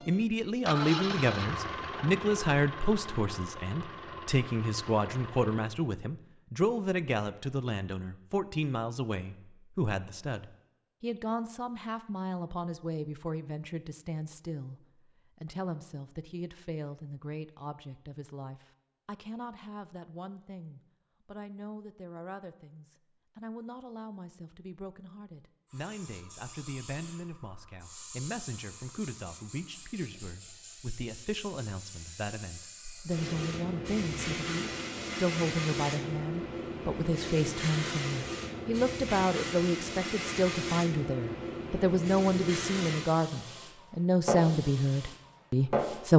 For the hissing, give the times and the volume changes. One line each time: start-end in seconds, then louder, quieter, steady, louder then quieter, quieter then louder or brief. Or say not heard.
25.6-46.1 louder.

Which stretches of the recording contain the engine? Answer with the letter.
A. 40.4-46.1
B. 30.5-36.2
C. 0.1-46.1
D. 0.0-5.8
D.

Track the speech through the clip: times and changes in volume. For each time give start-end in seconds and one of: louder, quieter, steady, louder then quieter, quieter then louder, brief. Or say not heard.
0.1-46.1 quieter then louder.